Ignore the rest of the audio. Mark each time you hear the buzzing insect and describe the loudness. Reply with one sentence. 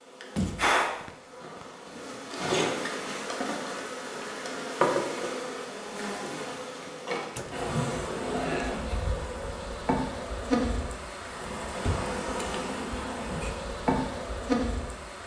The buzzing insect can be heard from 0.1 to 15.2 s, at a steady volume.